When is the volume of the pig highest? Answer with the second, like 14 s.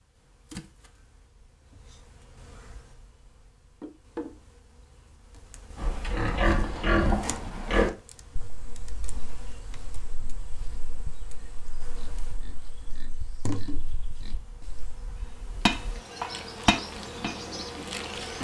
7 s.